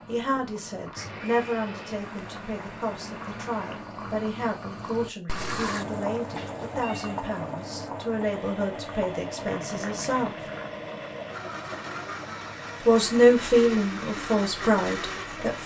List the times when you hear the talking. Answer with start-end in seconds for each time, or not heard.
0.1-10.3, 12.8-15.6.